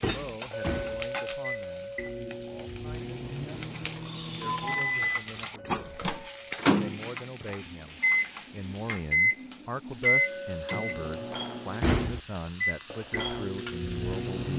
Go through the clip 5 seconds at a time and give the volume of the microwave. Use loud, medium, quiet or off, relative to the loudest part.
medium, loud, loud.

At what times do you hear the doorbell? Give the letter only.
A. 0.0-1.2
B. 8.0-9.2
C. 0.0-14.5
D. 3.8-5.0
D.